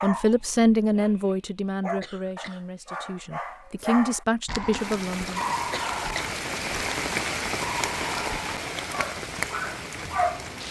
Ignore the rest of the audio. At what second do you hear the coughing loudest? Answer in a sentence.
The volume of the coughing peaks at 6 seconds.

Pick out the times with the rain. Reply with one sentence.
You can hear the rain from 4.8 to 10.6 s.